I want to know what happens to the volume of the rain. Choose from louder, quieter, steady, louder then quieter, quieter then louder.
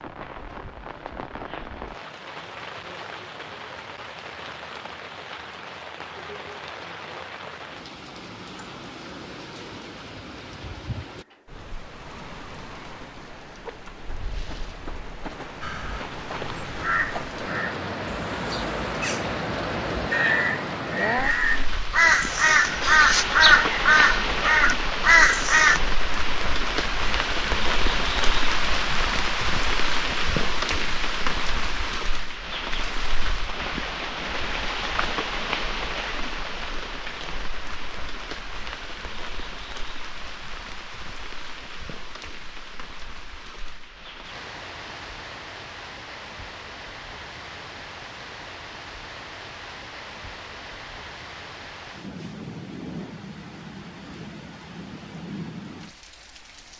louder then quieter.